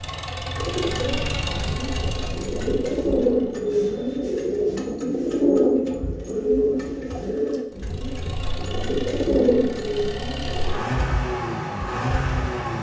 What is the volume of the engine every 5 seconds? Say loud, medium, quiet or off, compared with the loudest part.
medium, medium, loud.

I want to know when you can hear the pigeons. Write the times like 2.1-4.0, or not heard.
0.6-10.8.